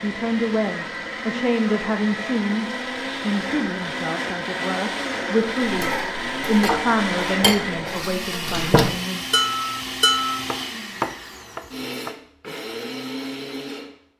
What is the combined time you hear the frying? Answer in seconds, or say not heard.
not heard.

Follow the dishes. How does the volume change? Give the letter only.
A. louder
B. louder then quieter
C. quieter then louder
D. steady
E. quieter
C.